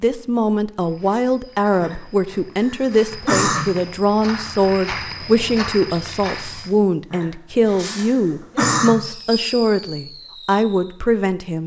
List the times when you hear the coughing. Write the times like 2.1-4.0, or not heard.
1.8-3.8, 7.1-9.0.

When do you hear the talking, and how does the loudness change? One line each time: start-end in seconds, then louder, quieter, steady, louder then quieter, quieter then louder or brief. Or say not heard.
0.0-11.6 steady.